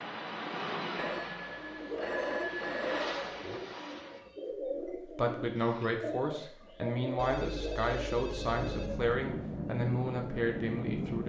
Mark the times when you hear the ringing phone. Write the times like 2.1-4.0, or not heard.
0.9-3.6, 7.2-9.1.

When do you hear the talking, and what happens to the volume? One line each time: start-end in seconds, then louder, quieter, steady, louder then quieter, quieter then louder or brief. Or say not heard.
5.0-11.2 steady.